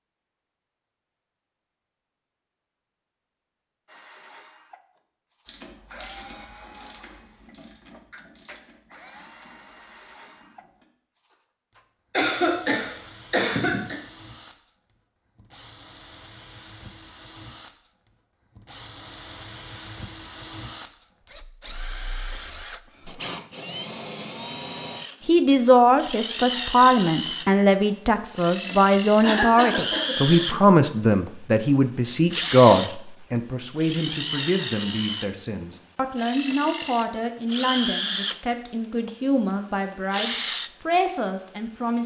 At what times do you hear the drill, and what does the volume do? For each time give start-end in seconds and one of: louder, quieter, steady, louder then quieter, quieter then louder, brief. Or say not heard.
3.9-42.0 louder.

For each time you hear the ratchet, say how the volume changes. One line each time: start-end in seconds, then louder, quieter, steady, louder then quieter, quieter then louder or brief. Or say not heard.
5.5-10.8 quieter.